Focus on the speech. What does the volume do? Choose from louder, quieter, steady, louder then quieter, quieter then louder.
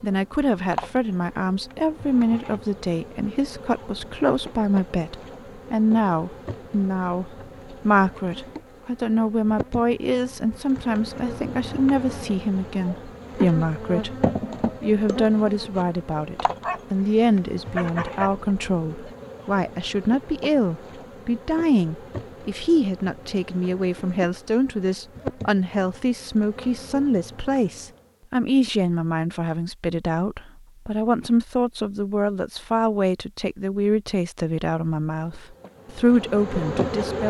steady.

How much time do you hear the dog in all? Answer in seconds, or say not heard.
2 s.